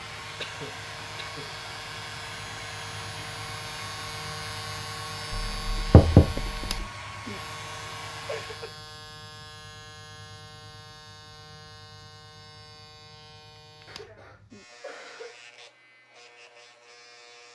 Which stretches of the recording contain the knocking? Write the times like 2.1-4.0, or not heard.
5.3-6.8.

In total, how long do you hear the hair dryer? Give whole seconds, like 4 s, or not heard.
9 s.